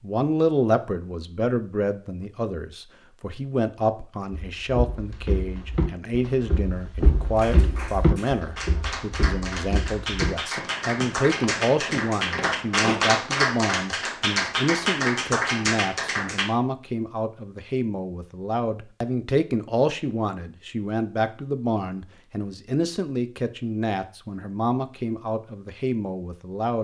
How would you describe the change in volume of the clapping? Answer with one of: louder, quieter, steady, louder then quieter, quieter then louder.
louder.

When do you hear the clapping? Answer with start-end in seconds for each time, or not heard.
7.3-16.5.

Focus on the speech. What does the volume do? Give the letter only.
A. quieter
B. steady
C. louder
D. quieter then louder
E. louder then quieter
B.